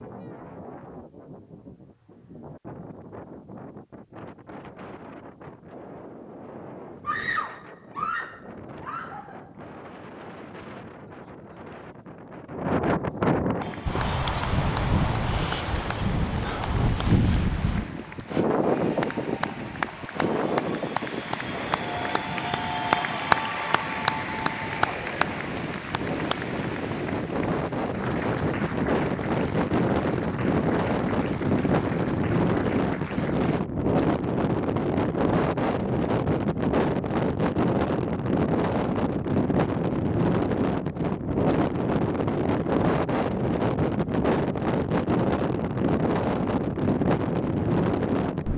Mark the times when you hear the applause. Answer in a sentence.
The applause can be heard from 13.6 to 33.6 s.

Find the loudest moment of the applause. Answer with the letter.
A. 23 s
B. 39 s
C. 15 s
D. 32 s
A.